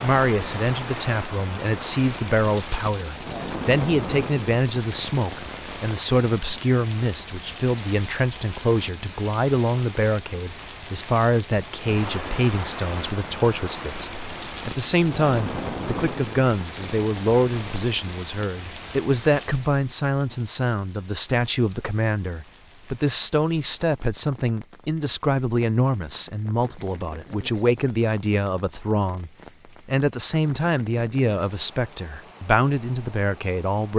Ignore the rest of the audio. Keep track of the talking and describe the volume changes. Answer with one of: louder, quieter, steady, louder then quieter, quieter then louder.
steady.